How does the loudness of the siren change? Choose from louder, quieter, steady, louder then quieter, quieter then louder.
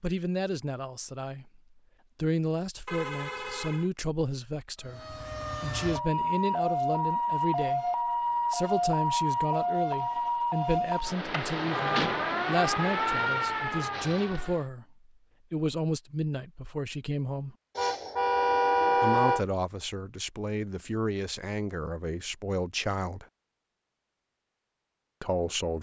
steady.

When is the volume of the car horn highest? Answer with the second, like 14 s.
19 s.